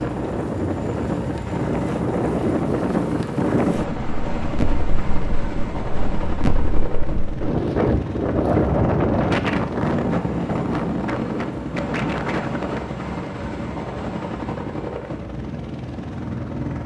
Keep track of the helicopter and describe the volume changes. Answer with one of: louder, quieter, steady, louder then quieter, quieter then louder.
steady.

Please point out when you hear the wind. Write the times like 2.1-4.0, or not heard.
0.0-13.0.